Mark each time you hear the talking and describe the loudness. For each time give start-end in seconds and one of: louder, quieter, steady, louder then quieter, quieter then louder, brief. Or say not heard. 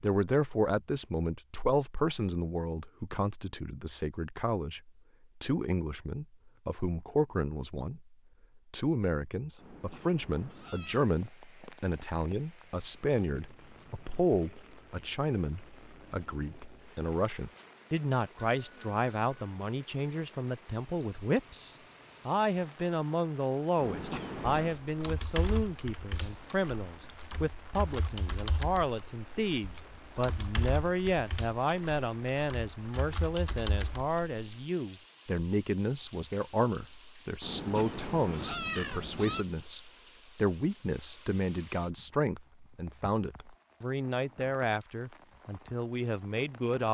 0.0-46.8 steady.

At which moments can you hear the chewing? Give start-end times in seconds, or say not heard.
not heard.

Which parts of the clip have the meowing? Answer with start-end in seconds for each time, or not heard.
9.6-11.1, 23.8-24.8, 37.4-39.5.